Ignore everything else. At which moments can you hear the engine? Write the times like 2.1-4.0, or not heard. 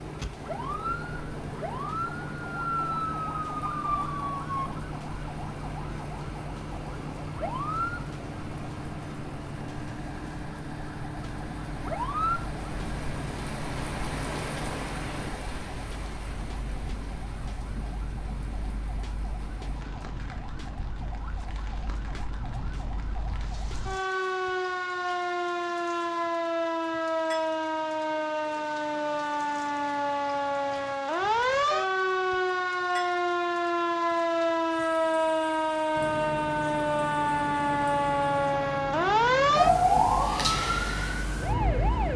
0.0-15.3, 36.0-42.1.